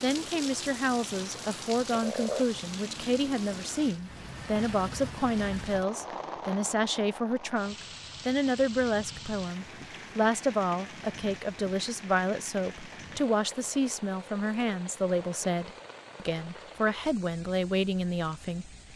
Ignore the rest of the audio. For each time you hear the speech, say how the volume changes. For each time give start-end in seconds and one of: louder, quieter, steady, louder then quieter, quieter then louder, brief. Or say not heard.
0.0-18.9 steady.